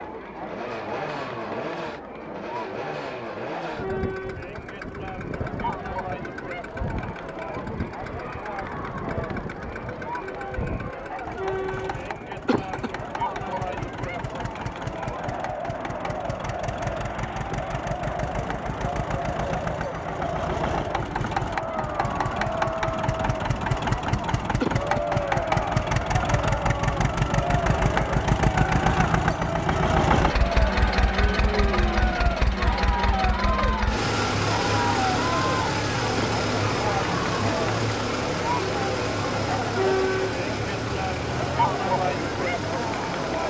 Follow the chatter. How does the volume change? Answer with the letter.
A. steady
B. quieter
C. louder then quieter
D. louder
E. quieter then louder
D.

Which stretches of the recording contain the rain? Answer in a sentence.
The rain can't be heard in this clip.